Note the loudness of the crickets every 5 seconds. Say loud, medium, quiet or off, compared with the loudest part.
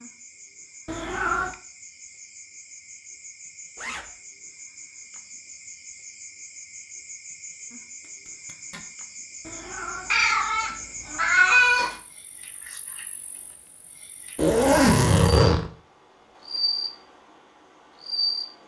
quiet, medium, medium, loud.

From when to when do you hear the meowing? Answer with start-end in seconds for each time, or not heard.
0.8-1.6, 9.4-11.9.